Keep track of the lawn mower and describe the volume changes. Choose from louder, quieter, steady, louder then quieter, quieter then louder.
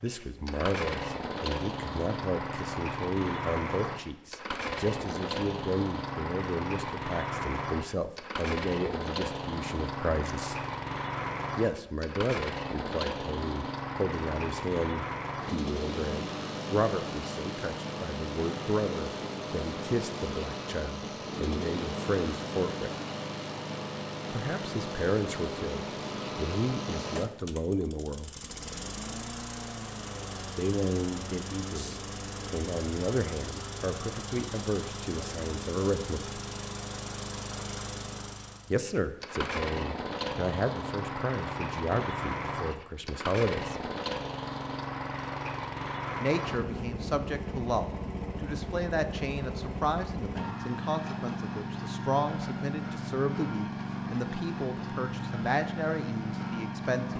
steady.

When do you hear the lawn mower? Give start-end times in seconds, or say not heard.
0.0-57.1.